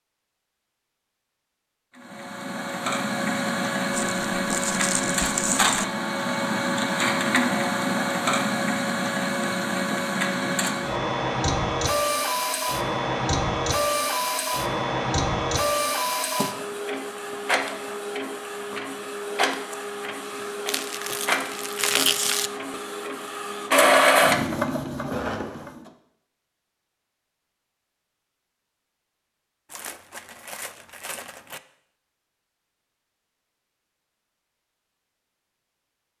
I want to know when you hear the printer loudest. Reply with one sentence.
The volume of the printer peaks at 24 seconds.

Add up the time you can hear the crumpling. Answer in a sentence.
The crumpling can be heard for 6 seconds in total.